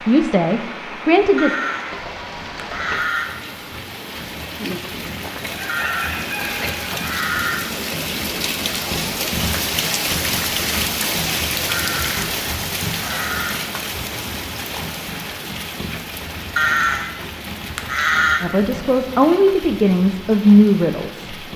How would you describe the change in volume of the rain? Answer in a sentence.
The volume of the rain goes up, then down.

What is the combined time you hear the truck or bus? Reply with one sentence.
The truck or bus can't be heard in this clip.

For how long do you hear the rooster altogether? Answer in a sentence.
The rooster can be heard for 2 seconds in total.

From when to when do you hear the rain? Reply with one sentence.
The rain can be heard from 0.0 to 21.5 s.